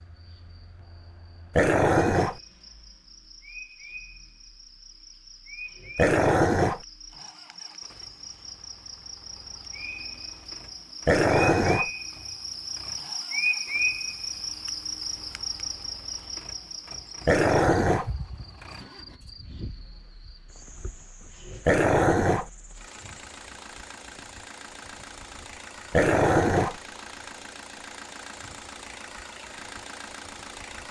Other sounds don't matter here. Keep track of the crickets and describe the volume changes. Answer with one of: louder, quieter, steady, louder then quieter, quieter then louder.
louder then quieter.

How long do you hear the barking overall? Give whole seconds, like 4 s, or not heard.
5 s.